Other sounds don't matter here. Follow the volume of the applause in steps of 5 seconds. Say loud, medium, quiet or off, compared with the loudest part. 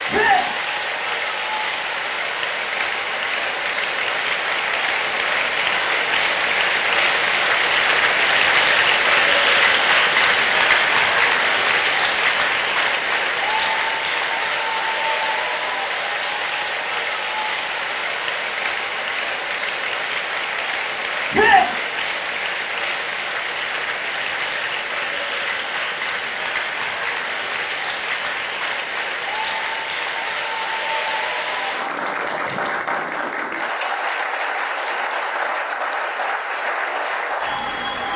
medium, loud, loud, medium, medium, medium, medium, medium.